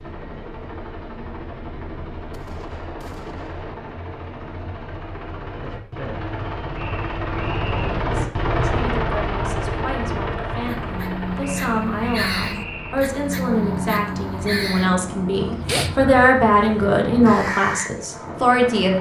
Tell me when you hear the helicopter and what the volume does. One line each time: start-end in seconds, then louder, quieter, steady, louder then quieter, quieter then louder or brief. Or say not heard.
0.0-18.9 louder then quieter.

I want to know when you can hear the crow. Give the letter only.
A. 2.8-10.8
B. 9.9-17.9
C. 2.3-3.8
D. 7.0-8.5
B.